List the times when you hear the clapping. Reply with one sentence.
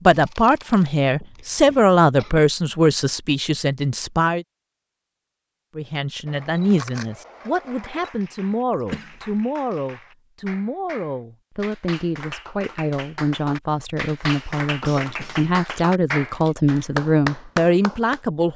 You can hear the clapping from 7.7 to 18.2 s.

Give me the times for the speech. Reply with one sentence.
You can hear the speech from 0.1 to 4.5 s and from 5.8 to 18.5 s.